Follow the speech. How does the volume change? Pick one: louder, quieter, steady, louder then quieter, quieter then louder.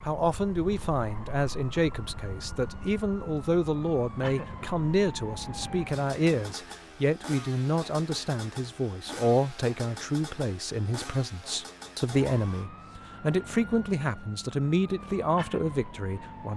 steady.